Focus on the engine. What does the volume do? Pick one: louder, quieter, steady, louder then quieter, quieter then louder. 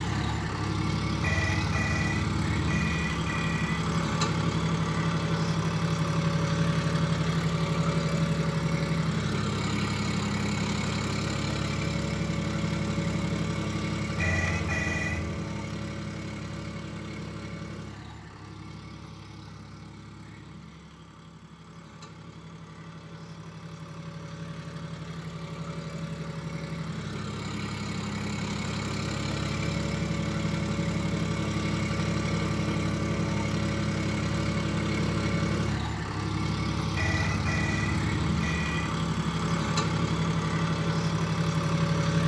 quieter then louder.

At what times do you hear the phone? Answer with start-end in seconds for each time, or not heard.
1.2-3.8, 14.2-15.3, 37.0-39.0.